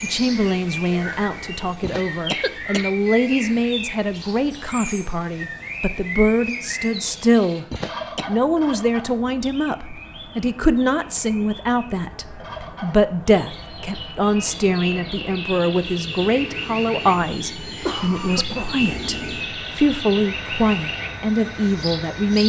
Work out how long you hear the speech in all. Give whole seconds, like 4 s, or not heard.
22 s.